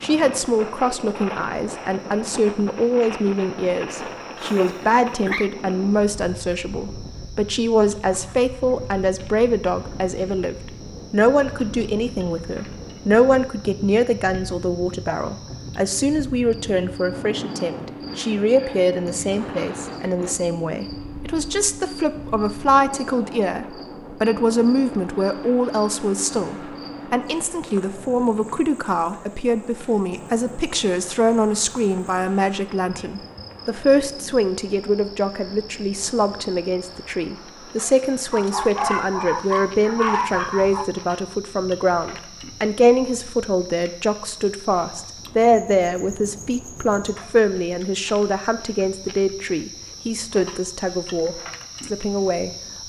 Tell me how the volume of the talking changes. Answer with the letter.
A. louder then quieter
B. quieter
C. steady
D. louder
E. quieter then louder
C.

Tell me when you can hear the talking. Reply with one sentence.
The talking can be heard from 0.0 to 52.5 s.